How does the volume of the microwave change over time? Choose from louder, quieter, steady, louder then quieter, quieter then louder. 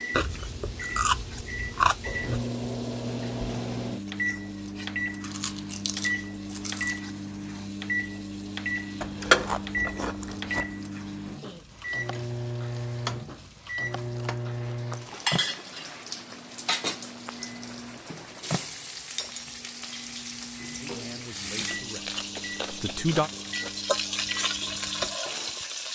quieter.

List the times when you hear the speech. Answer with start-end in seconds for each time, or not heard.
20.8-23.3.